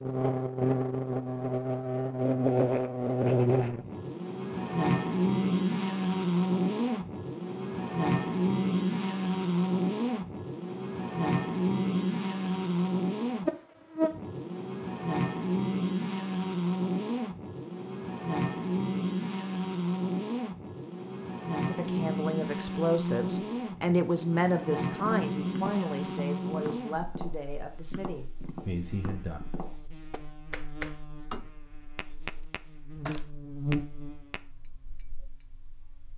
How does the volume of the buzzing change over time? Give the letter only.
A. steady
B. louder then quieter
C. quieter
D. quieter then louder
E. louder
C.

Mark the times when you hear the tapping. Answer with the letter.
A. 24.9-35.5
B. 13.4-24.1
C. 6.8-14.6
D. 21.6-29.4
A.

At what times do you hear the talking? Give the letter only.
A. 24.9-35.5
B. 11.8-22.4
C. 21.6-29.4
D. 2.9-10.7
C.